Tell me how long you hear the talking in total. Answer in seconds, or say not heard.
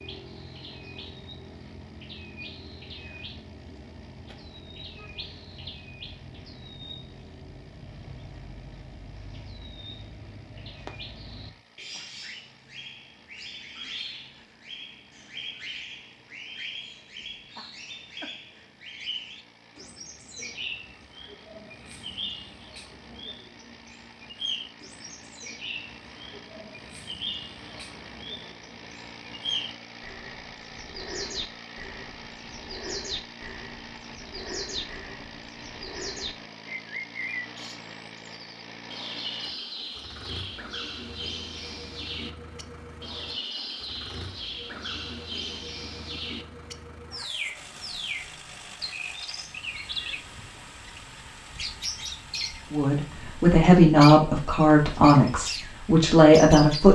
4 s.